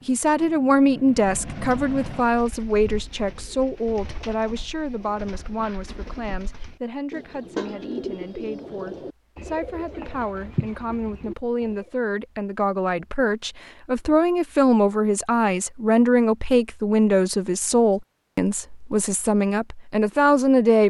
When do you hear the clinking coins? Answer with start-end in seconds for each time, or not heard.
not heard.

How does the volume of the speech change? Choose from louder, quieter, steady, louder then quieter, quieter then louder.
quieter then louder.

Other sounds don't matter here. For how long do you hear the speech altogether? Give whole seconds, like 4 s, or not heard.
21 s.